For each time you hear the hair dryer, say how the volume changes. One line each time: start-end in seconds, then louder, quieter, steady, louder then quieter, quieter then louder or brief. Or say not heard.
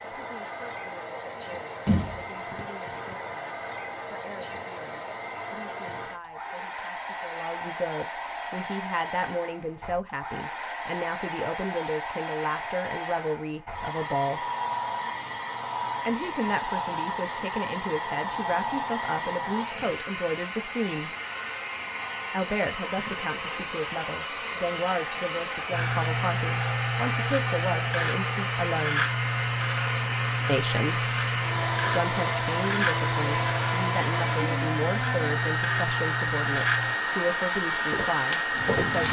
0.0-39.0 louder.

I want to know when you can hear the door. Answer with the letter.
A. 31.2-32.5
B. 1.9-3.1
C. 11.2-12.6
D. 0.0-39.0
B.